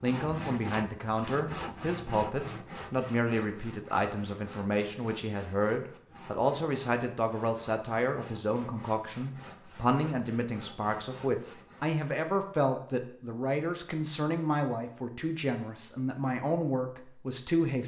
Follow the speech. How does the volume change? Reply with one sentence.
The loudness of the speech stays about the same.